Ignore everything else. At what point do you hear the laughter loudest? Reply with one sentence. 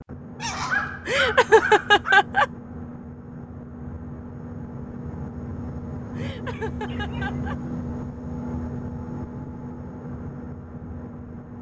The volume of the laughter peaks at 2 seconds.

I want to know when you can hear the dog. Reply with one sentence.
The dog can be heard from 0.4 to 2.2 s and from 6.5 to 7.4 s.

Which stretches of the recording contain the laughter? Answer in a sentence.
The laughter can be heard from 1.1 to 2.5 s and from 6.2 to 7.5 s.